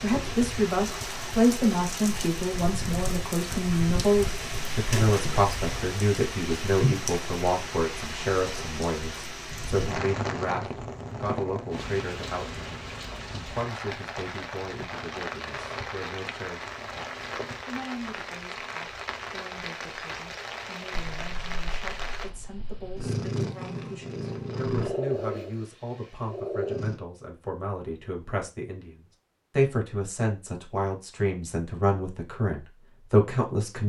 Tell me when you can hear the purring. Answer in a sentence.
You can hear the purring from 21.1 to 27.0 s.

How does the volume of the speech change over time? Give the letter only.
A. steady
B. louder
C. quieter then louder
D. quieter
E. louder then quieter
C.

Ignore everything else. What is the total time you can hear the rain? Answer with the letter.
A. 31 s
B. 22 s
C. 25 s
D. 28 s
B.